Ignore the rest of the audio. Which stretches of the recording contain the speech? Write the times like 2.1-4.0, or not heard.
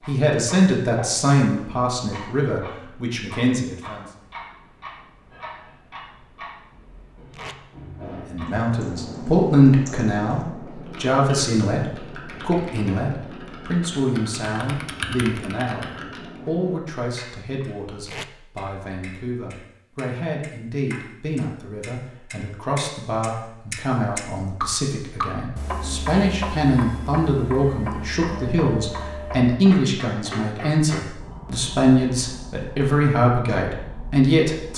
0.1-4.0, 8.0-34.7.